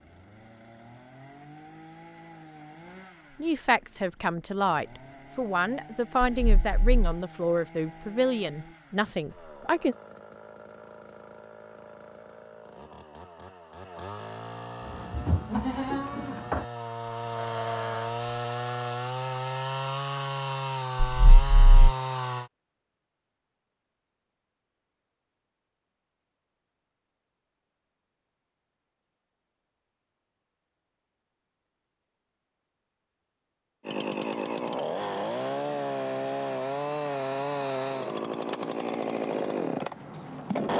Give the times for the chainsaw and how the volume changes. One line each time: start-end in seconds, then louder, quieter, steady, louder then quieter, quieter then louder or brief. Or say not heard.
0.0-22.5 louder
33.9-40.7 steady.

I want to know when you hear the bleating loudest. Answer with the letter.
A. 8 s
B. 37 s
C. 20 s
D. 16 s
D.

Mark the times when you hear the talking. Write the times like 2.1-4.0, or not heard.
3.4-9.9.